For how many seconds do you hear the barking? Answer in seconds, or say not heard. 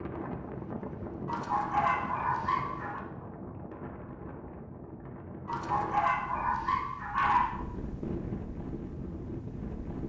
4 s.